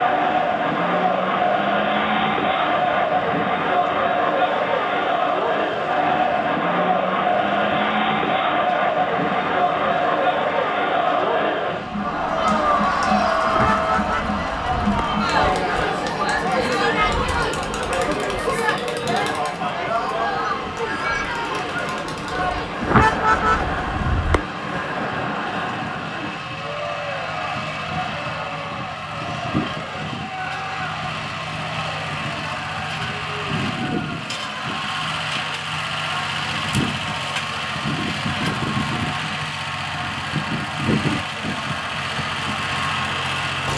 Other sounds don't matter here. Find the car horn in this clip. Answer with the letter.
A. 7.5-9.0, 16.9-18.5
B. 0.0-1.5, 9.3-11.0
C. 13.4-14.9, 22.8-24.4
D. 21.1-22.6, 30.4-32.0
C.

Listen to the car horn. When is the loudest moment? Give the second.
23 s.